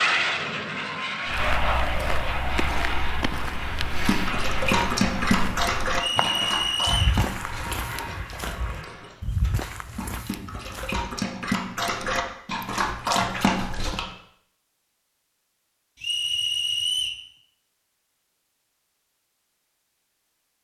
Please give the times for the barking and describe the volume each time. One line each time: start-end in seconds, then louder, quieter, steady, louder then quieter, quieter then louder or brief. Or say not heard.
3.9-14.1 quieter then louder.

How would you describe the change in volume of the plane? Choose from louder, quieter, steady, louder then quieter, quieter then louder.
quieter.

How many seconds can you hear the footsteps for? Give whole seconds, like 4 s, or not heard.
10 s.